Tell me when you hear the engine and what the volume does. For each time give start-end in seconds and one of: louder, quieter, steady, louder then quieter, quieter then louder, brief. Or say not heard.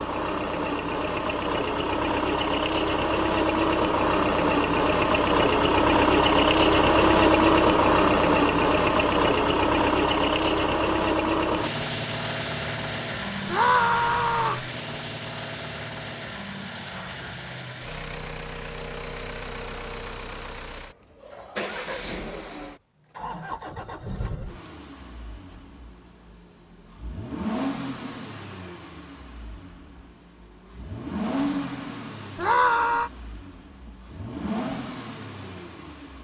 0.0-36.1 quieter.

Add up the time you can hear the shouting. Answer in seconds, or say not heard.
2 s.